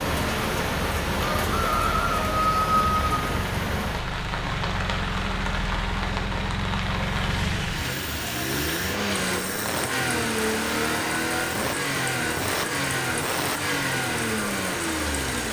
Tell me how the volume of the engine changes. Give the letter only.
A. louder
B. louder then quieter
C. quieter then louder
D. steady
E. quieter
A.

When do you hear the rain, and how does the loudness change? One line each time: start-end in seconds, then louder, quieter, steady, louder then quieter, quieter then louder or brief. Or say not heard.
0.0-15.4 quieter.